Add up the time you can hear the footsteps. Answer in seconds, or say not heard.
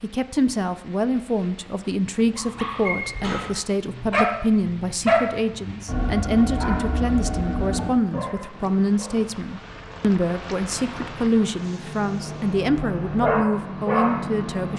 not heard.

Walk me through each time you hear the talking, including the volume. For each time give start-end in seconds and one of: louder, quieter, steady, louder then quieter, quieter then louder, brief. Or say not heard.
0.0-14.7 steady.